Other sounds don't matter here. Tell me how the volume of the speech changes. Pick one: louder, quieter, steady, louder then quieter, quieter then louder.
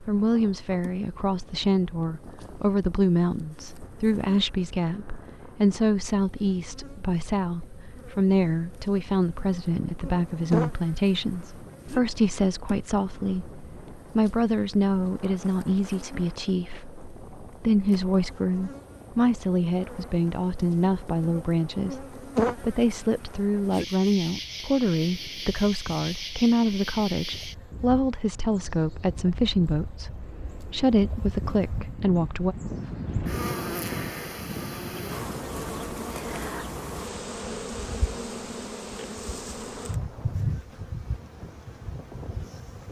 steady.